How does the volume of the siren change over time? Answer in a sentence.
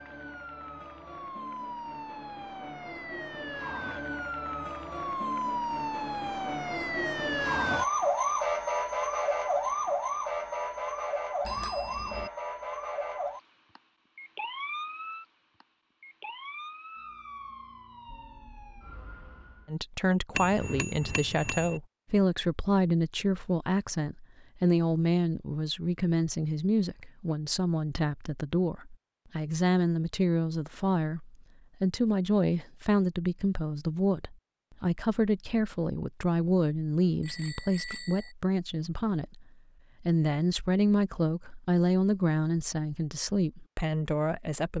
The volume of the siren goes up, then down.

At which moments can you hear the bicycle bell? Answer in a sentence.
You can hear the bicycle bell from 11.4 to 12.3 s, from 20.4 to 21.8 s and from 37.2 to 38.4 s.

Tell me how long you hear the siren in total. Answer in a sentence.
You can hear the siren for 20 seconds altogether.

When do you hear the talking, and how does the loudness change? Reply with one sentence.
The talking can be heard from 19.6 to 44.7 s, at a steady volume.